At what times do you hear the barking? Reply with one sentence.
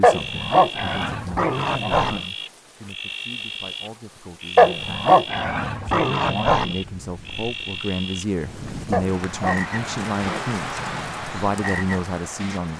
The barking can be heard from 0.0 to 2.2 s, from 4.5 to 6.8 s and from 8.9 to 10.4 s.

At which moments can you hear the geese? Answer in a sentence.
The geese can't be heard in this clip.